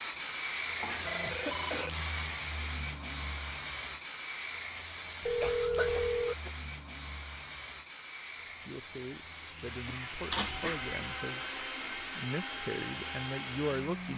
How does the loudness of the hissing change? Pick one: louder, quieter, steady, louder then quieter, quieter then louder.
quieter.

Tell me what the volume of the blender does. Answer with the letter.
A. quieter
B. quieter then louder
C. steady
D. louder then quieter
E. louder
C.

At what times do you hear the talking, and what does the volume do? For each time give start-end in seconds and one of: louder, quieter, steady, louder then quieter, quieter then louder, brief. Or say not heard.
8.4-14.1 louder.